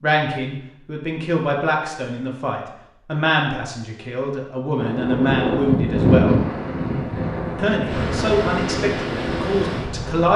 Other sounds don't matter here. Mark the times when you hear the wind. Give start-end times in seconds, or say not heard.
4.8-10.3.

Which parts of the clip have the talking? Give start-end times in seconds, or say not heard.
0.0-6.4, 7.5-10.3.